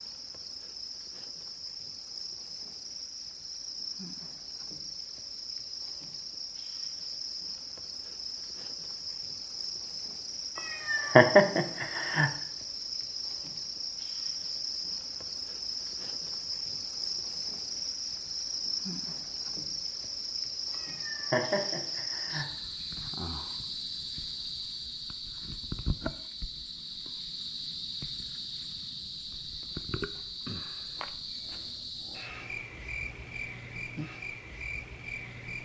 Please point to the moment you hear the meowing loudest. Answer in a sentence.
The loudest moment of the meowing is at 11 seconds.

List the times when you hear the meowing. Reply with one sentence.
You can hear the meowing from 10.6 to 12.3 s and from 20.7 to 22.4 s.